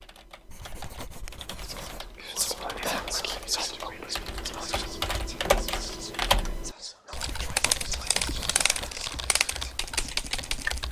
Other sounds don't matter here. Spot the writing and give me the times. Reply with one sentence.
The writing can be heard from 0.5 to 2.1 s and from 7.2 to 8.9 s.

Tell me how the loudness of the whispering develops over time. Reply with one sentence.
The loudness of the whispering goes down.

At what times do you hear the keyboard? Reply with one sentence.
The keyboard can be heard from 0.0 to 10.8 s.